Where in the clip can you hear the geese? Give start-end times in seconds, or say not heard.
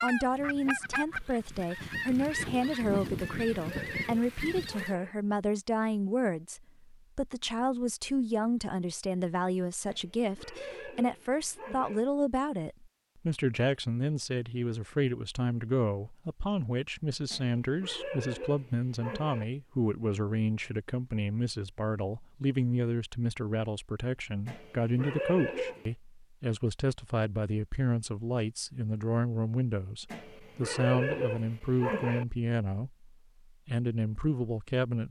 0.0-5.0.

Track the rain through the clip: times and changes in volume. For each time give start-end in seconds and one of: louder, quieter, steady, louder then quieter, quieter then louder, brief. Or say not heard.
not heard.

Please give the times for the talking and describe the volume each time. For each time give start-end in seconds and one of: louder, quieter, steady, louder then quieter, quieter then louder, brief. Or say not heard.
0.0-35.0 steady.